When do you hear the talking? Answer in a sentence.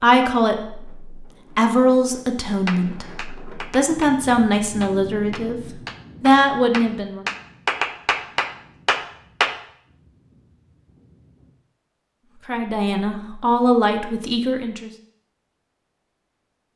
The talking can be heard from 0.0 to 5.6 s, from 6.2 to 7.2 s and from 12.4 to 14.9 s.